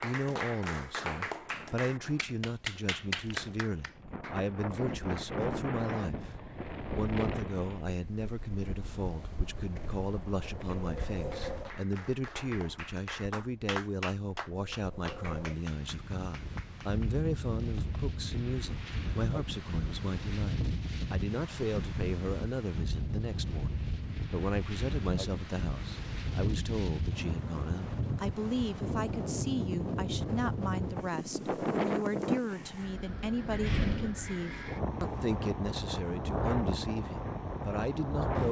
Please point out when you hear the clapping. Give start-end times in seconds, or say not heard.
0.0-5.5, 10.7-18.0.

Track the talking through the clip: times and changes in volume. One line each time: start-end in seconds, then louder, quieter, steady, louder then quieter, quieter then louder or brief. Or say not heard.
0.0-38.4 steady.